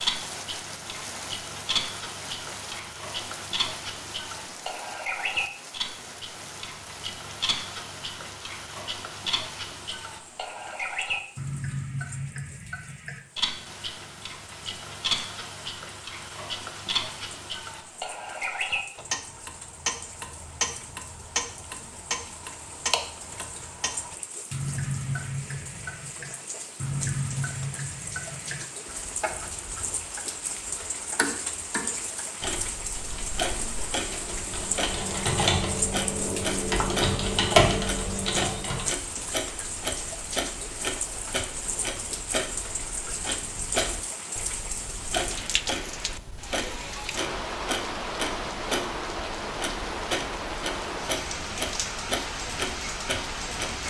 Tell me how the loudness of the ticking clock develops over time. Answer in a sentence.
The volume of the ticking clock stays about the same.